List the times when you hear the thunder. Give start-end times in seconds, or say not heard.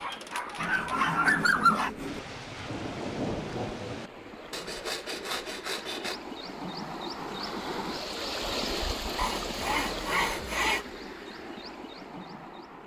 2.0-4.1.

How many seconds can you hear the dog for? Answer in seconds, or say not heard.
2 s.